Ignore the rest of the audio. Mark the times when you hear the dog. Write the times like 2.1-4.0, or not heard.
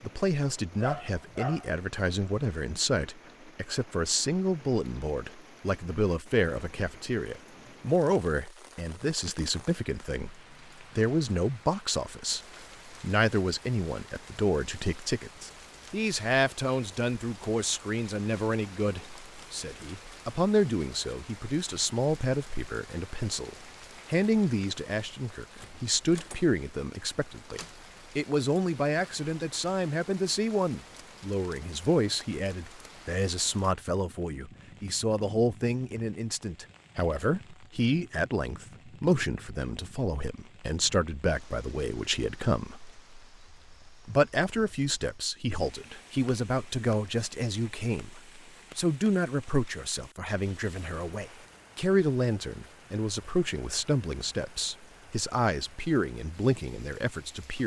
0.8-1.7.